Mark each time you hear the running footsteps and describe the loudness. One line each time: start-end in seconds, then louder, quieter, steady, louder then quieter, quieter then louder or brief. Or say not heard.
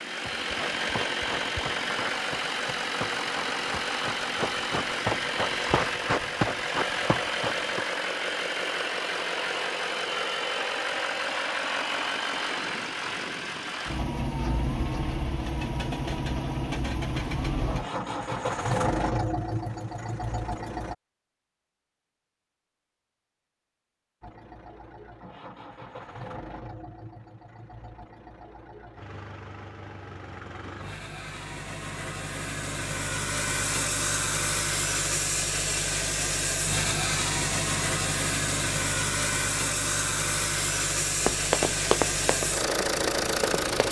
0.2-7.8 louder
41.2-43.8 brief.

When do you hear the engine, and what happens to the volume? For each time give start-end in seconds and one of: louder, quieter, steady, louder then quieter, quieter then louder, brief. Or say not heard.
0.0-20.9 steady
24.2-43.8 louder.